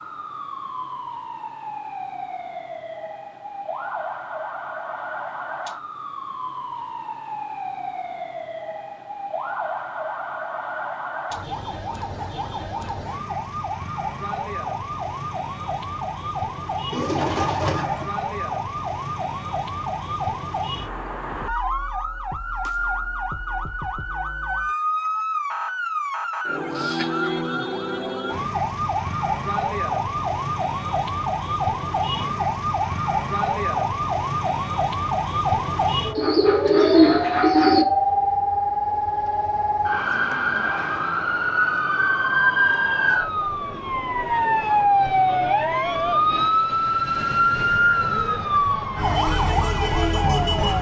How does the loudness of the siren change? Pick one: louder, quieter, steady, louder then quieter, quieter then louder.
louder.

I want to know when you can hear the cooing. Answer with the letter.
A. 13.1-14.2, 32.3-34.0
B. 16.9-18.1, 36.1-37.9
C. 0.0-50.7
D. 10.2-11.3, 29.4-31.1
B.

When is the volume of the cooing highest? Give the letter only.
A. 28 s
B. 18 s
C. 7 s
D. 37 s
D.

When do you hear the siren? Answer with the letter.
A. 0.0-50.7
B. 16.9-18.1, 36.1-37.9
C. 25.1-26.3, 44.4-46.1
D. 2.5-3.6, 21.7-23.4
A.